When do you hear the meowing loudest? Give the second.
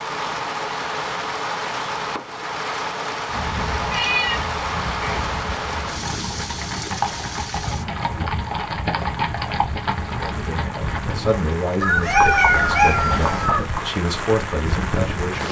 12 s.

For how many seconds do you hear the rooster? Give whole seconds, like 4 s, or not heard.
2 s.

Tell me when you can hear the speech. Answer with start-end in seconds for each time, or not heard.
10.2-15.4.